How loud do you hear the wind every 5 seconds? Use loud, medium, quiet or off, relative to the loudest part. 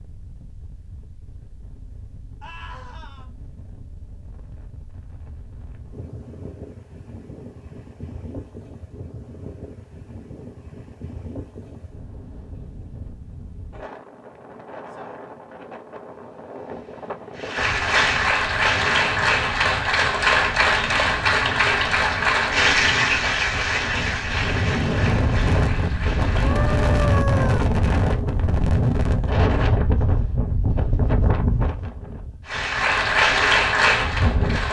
quiet, quiet, quiet, quiet, medium, loud, medium.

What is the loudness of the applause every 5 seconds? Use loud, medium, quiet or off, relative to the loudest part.
off, off, off, loud, loud, quiet, loud.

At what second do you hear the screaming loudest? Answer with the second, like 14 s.
27 s.